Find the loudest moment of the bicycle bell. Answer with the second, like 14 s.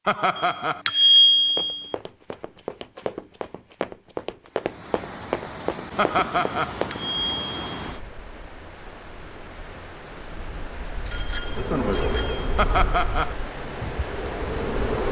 1 s.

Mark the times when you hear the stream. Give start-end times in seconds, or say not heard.
4.5-15.0.